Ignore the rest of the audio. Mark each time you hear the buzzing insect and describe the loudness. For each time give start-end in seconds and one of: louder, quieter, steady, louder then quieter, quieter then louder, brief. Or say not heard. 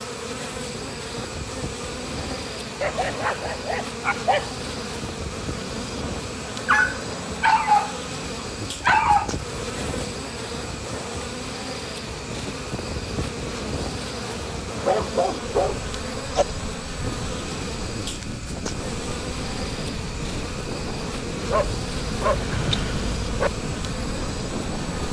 0.0-25.0 steady.